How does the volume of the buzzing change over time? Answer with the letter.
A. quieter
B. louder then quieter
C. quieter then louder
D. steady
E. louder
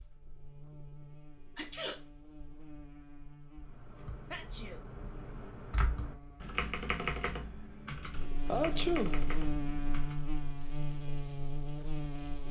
E.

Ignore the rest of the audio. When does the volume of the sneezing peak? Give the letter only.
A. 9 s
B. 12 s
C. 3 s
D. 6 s
A.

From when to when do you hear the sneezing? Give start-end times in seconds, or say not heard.
1.6-2.0, 4.3-4.8, 8.4-9.2.